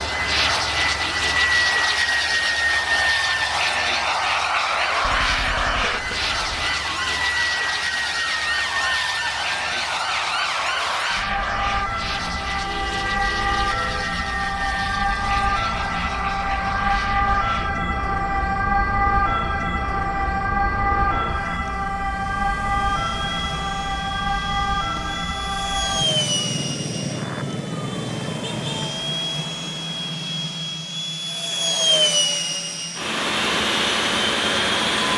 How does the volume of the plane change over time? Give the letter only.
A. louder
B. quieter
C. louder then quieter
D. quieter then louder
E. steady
D.